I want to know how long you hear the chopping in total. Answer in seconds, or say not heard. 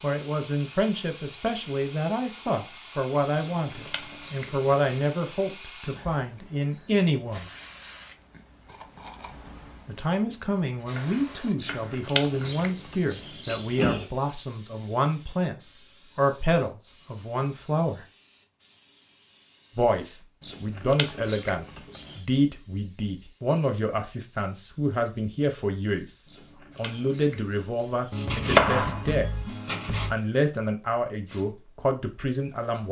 4 s.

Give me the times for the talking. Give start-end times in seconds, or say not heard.
0.0-7.5, 9.8-15.6, 16.1-18.1, 19.8-26.1, 26.8-29.3, 30.1-32.8.